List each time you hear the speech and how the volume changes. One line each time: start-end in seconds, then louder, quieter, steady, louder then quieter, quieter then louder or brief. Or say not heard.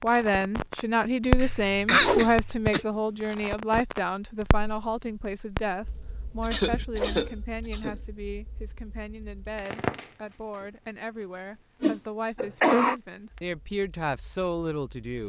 0.0-15.2 quieter then louder.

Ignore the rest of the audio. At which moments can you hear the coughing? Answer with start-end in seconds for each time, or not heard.
1.4-2.9, 6.5-8.0, 12.3-12.9.